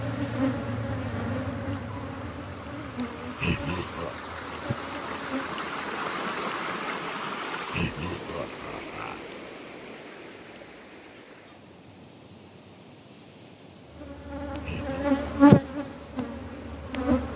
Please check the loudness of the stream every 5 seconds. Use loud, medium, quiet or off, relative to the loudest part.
medium, loud, quiet, quiet.